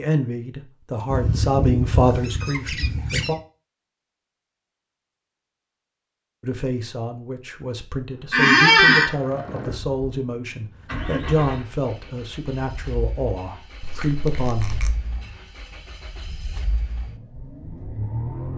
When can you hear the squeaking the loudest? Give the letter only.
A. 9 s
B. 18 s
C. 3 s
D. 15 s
A.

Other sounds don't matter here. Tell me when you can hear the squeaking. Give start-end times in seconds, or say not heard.
1.1-3.4, 8.3-9.1, 13.8-14.9.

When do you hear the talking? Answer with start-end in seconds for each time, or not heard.
0.0-3.4, 6.4-14.8.